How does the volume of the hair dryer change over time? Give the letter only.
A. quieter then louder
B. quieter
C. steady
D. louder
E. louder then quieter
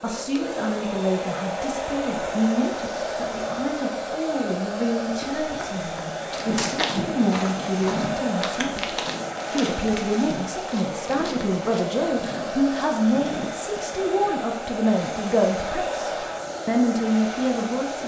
C.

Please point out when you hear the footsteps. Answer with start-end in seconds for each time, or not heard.
5.0-14.3.